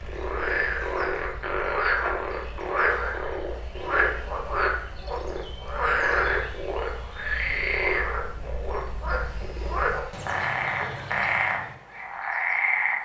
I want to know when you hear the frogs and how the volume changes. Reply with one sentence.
The frogs can be heard from 0.0 to 12.9 s, at a steady volume.